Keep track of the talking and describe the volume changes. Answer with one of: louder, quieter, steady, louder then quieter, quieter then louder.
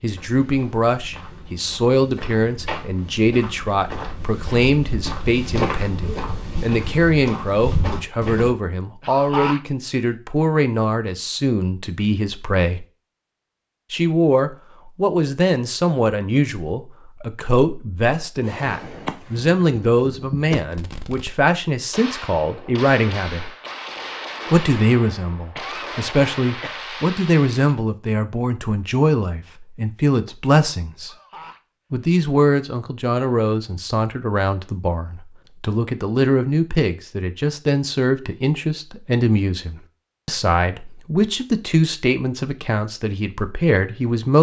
steady.